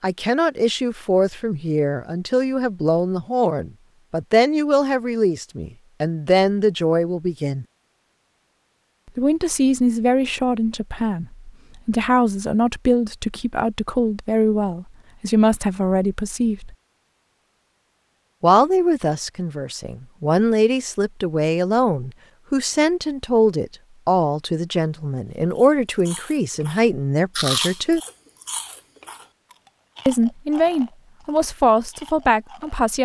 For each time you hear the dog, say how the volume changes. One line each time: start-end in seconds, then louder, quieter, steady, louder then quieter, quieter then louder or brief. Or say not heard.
not heard.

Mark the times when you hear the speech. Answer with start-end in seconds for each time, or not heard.
0.0-7.7, 9.2-16.8, 18.4-28.0, 30.1-32.9.